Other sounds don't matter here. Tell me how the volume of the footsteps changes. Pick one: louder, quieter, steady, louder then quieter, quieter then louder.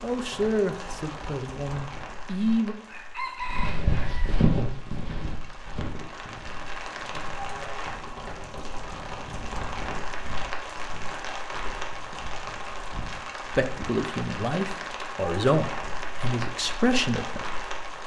quieter.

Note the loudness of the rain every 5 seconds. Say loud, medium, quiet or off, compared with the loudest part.
medium, loud, loud, loud.